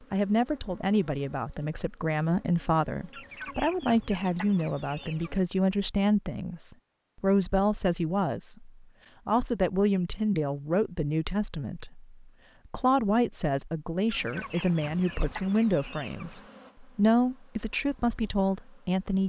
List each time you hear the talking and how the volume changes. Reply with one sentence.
The talking can be heard from 0.1 to 19.2 s, at a steady volume.